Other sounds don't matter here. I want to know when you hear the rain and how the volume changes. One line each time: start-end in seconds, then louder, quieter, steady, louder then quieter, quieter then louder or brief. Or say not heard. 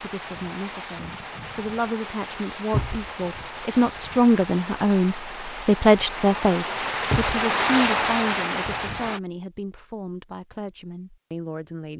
0.0-9.2 louder.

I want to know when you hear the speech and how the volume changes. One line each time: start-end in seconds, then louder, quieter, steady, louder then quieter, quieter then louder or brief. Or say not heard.
0.0-11.9 louder then quieter.